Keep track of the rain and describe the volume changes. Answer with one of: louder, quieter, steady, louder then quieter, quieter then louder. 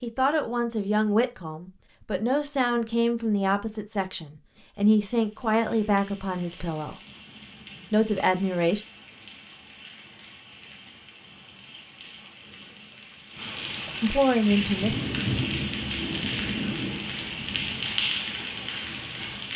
louder.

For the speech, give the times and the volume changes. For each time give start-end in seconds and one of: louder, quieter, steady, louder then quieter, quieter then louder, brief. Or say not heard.
0.0-7.0 steady
7.9-8.8 brief
14.0-14.9 brief.